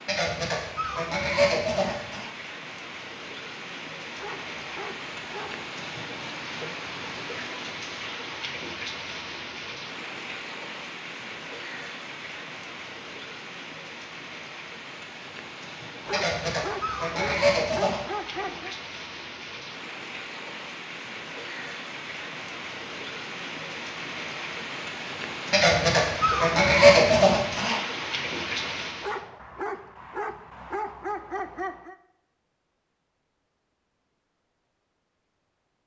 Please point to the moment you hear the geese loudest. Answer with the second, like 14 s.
27 s.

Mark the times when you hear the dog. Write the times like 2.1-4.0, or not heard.
4.2-5.7, 16.1-18.8, 29.0-31.9.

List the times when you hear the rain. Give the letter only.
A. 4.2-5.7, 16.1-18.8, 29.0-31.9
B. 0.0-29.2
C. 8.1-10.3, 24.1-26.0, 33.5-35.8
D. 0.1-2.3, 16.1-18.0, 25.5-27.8
B.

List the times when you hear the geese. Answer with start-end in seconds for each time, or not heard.
0.1-2.3, 16.1-18.0, 25.5-27.8.